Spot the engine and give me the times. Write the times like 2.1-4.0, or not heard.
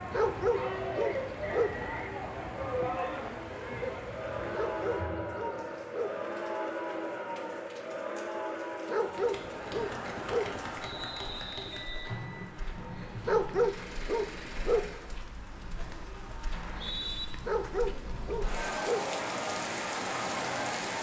9.1-15.1.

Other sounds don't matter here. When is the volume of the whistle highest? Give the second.
17 s.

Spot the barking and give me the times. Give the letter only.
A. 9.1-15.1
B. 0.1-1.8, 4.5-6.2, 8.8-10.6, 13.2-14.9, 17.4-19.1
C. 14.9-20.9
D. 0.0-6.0
B.